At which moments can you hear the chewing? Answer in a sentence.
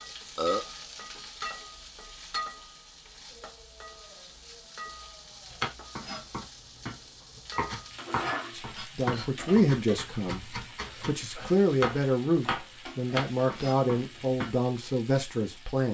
You can't hear the chewing here.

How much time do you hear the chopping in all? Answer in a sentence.
You can hear the chopping for 9 seconds altogether.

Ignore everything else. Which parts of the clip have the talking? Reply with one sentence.
The talking can be heard from 8.5 to 15.8 s.